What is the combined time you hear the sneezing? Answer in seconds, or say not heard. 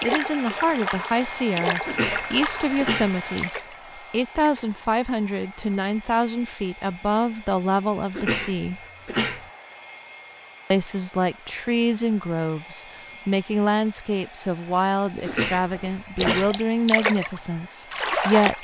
4 s.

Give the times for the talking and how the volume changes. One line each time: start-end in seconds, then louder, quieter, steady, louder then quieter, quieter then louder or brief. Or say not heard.
0.0-8.8 steady
10.7-18.5 steady.